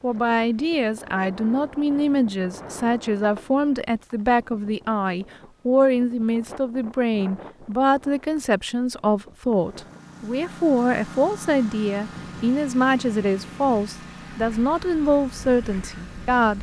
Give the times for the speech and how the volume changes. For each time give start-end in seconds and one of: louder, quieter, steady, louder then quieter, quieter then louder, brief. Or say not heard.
0.0-16.5 steady.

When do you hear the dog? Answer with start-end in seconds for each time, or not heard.
not heard.